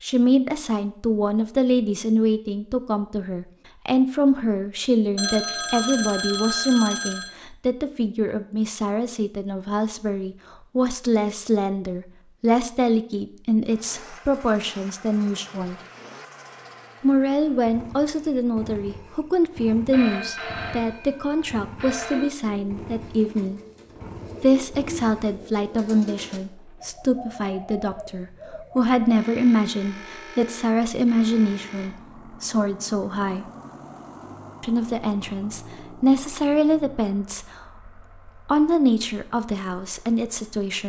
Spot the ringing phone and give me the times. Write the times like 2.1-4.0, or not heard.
5.2-7.3, 19.9-22.3, 29.1-31.9.